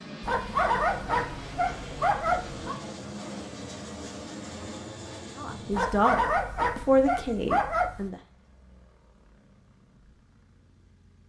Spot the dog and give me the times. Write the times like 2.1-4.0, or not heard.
0.2-2.8, 5.7-8.1.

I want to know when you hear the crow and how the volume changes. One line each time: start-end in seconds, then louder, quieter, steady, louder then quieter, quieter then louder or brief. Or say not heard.
not heard.